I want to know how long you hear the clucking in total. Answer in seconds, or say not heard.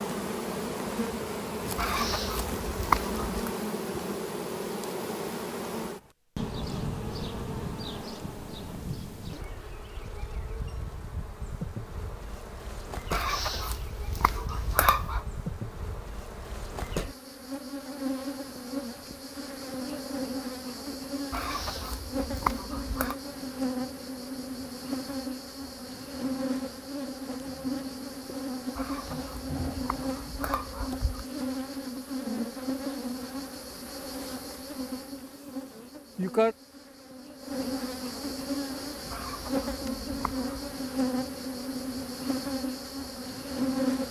10 s.